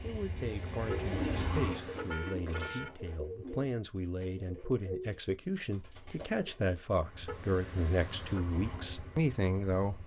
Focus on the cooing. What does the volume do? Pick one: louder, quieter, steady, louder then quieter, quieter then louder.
quieter.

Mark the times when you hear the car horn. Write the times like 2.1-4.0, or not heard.
0.8-2.9, 7.2-8.5.